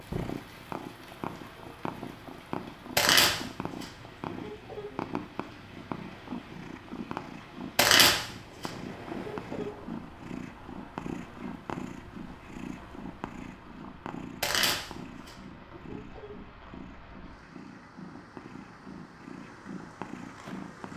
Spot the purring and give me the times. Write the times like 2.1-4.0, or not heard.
0.0-20.9.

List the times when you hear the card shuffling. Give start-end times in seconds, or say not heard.
3.0-4.8, 7.8-9.7, 14.4-16.3.